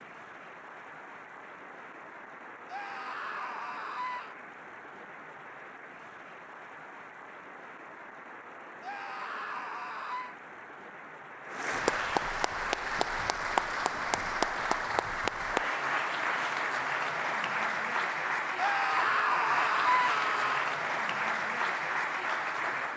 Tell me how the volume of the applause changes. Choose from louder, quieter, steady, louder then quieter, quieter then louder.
louder.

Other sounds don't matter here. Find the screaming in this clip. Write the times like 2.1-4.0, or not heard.
2.6-4.3, 8.8-10.3, 18.6-20.7.